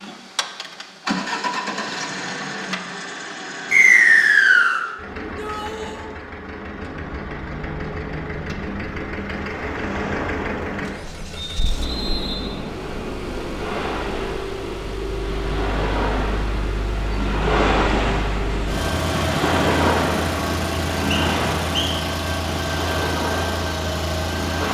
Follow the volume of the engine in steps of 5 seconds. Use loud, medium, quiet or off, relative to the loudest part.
loud, medium, medium, loud, loud.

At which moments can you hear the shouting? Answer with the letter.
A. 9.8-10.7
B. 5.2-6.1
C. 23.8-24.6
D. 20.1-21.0
B.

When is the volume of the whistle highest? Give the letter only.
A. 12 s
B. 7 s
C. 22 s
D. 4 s
D.